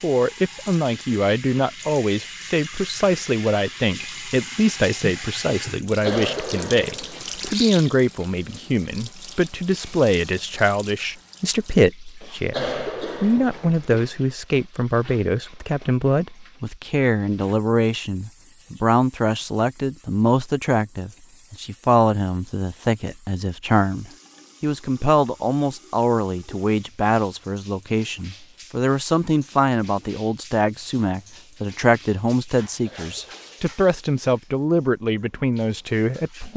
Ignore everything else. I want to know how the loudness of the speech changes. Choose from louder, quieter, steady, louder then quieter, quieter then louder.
steady.